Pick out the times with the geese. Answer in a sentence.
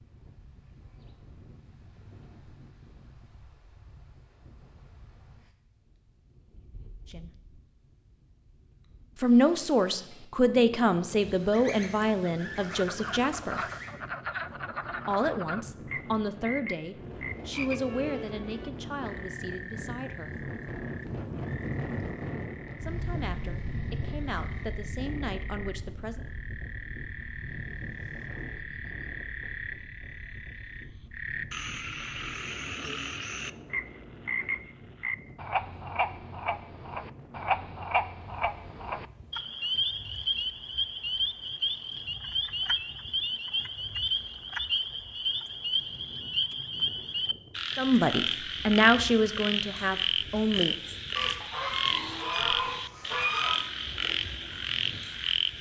The geese can be heard from 11.2 to 13.9 s and from 51.1 to 53.6 s.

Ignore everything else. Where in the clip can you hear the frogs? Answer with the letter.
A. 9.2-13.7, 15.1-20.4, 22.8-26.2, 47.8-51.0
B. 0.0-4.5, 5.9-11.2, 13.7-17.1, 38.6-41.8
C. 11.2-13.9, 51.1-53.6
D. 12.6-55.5
D.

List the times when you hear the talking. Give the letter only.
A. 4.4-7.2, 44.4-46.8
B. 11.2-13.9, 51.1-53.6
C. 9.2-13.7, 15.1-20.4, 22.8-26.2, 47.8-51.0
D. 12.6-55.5
C.